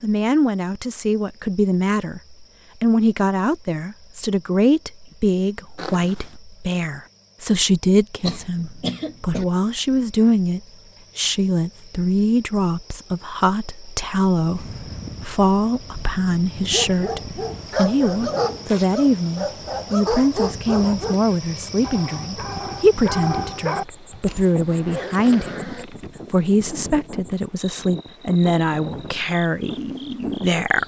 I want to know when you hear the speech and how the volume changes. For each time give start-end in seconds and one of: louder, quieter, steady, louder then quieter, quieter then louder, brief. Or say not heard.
0.0-30.8 steady.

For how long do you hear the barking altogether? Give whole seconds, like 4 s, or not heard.
8 s.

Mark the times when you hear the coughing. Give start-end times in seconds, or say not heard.
8.2-9.4.